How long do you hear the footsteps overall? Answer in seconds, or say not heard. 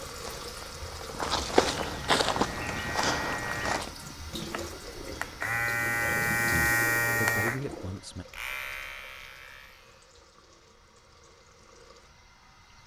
4 s.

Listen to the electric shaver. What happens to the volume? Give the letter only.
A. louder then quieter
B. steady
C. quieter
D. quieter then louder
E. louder
A.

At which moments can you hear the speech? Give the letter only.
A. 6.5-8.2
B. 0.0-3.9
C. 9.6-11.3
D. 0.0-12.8
A.